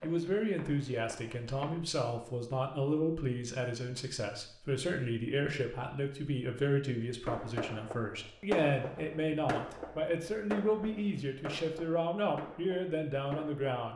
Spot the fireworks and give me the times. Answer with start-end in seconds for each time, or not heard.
7.2-13.7.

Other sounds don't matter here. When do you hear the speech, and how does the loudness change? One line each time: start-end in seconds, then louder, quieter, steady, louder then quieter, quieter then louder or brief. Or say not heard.
0.0-13.9 steady.